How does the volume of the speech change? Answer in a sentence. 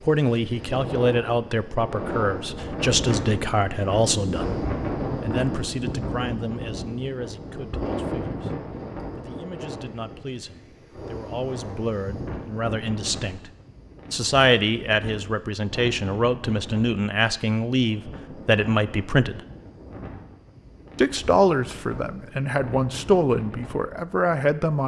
The volume of the speech goes down, then up.